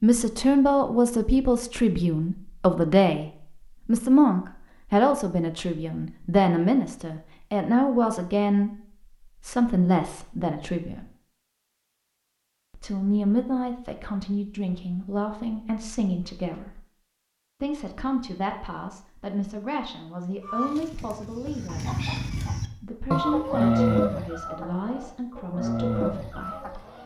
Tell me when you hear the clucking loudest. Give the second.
24 s.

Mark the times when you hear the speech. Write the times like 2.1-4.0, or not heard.
0.0-11.1, 12.8-16.8, 17.6-21.9, 22.7-26.8.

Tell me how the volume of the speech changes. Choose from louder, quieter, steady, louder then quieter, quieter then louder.
quieter.